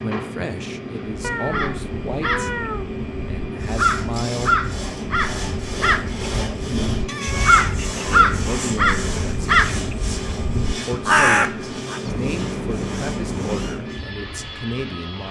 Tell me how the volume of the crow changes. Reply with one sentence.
The loudness of the crow goes up.